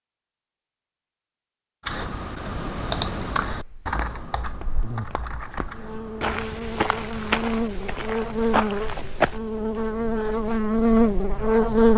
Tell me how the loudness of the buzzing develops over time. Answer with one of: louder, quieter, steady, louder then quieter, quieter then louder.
louder.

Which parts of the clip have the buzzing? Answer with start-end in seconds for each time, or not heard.
4.6-11.9.